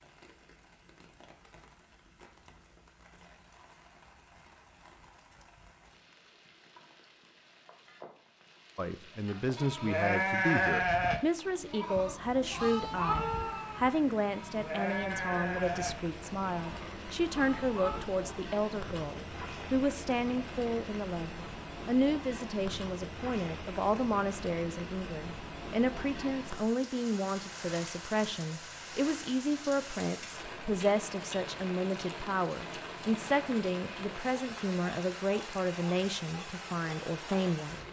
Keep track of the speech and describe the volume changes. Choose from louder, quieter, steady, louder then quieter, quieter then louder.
steady.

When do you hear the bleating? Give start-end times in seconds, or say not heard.
9.6-18.0.